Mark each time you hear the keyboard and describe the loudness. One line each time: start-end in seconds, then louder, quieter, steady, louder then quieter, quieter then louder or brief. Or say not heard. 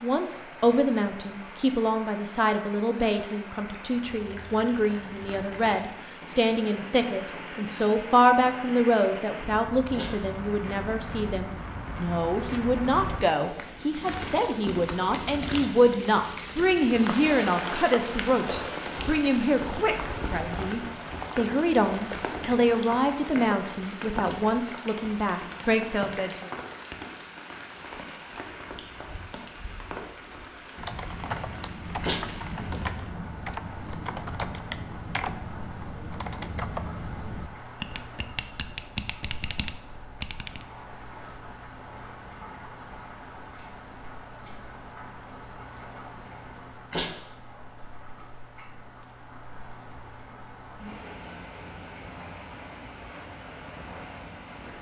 30.8-40.6 steady.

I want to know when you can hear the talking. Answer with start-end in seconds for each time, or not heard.
0.0-26.5.